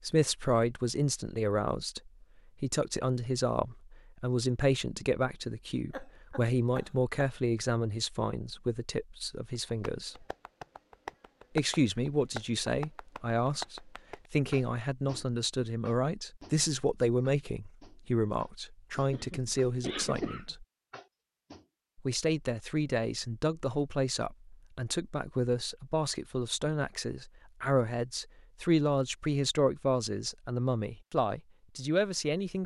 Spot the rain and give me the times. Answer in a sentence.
The rain can't be heard in this clip.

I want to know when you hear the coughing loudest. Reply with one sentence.
The volume of the coughing peaks at 20 seconds.